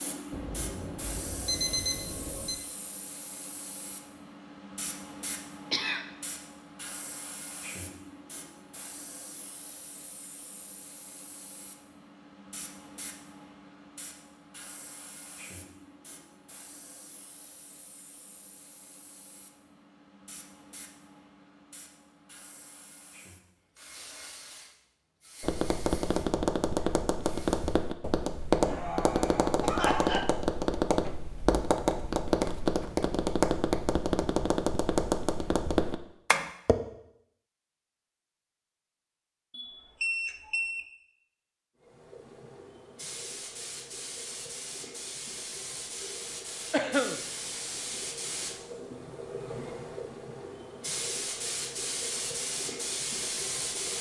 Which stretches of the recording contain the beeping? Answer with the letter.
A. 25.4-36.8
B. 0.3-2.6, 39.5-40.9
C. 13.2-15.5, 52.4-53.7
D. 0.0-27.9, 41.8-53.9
B.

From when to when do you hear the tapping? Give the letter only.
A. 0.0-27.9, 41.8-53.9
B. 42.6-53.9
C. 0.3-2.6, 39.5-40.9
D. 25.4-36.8
D.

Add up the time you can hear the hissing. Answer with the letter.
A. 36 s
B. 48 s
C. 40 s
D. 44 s
C.